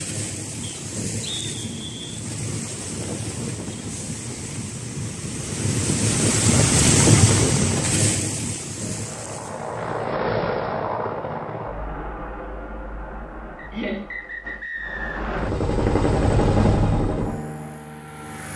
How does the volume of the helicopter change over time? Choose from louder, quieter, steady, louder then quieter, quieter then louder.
quieter then louder.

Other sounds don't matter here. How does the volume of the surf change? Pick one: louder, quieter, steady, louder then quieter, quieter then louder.
louder then quieter.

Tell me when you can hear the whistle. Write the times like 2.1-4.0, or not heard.
0.6-2.2, 13.6-15.2.